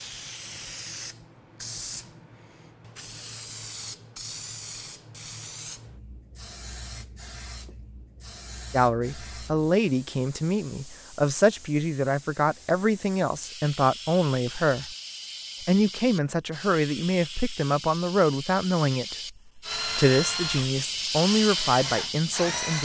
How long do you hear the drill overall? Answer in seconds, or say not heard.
3 s.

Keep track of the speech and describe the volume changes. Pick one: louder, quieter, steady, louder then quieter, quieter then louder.
steady.